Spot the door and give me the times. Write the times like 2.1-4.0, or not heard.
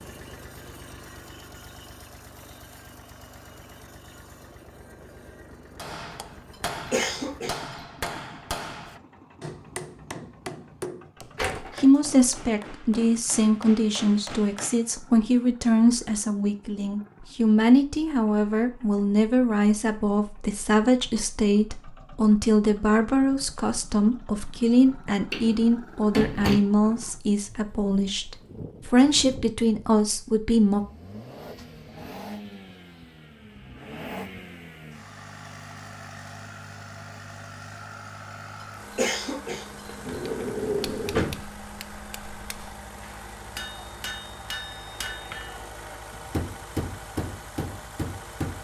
11.3-11.8, 25.3-26.6, 39.9-41.4.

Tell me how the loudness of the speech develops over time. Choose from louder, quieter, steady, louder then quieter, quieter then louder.
steady.